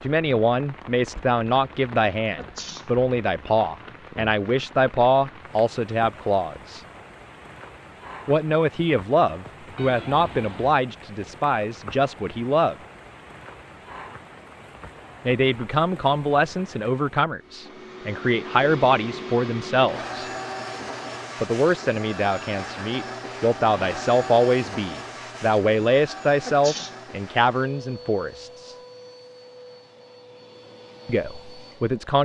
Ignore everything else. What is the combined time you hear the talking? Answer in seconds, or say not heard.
25 s.